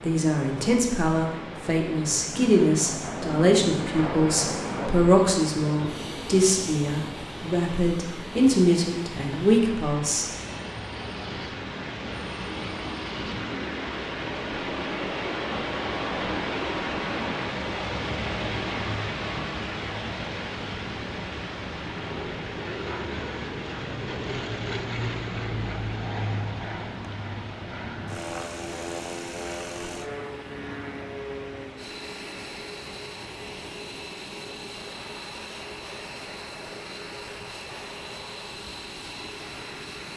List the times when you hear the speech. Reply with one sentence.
You can hear the speech from 0.0 to 10.3 s.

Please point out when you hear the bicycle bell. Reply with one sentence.
The bicycle bell can't be heard in this clip.